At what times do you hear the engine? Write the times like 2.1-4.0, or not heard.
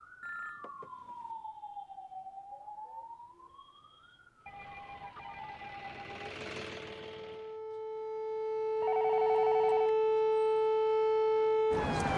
4.4-7.6.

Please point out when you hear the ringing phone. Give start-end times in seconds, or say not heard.
0.2-1.3, 4.5-6.4, 8.8-9.9.